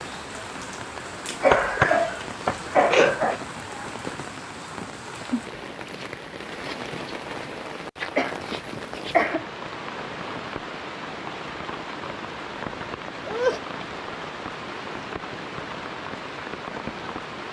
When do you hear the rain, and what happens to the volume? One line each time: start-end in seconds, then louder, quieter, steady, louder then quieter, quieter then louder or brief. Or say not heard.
0.0-17.4 steady.